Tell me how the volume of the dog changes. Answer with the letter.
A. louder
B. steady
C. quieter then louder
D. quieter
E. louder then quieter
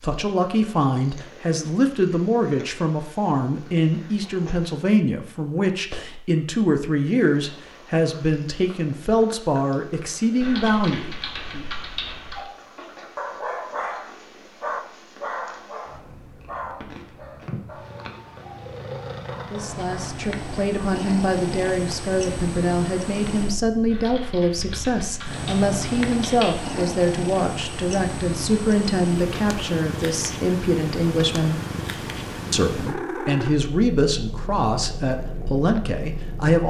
D.